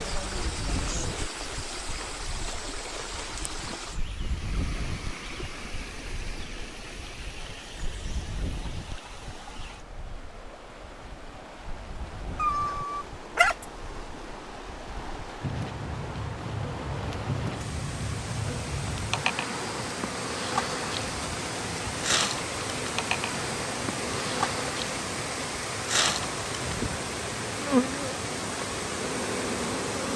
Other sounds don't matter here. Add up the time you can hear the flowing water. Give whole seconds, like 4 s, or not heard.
30 s.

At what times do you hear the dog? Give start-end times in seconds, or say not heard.
12.3-13.7.